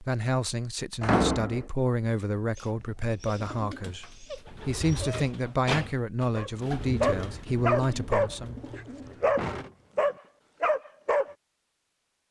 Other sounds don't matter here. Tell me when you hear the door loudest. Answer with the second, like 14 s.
1 s.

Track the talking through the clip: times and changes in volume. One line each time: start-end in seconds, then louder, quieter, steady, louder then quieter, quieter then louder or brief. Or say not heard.
0.0-8.6 steady.